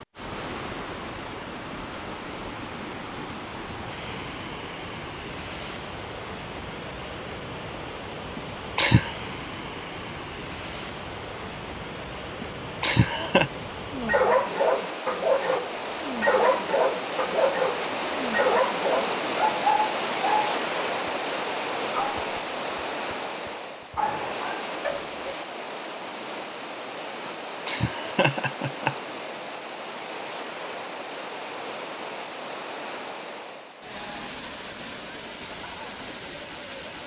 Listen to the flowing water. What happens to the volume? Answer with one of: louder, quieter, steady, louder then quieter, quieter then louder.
louder then quieter.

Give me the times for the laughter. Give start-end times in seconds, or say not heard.
8.3-9.2, 12.4-13.5, 27.6-28.9.